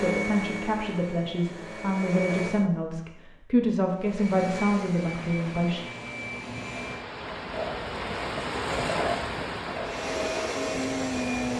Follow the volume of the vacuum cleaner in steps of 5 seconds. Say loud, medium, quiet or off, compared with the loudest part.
medium, medium, loud.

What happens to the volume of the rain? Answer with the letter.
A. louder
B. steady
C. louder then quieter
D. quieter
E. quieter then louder
C.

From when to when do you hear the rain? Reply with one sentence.
You can hear the rain from 5.0 to 11.5 s.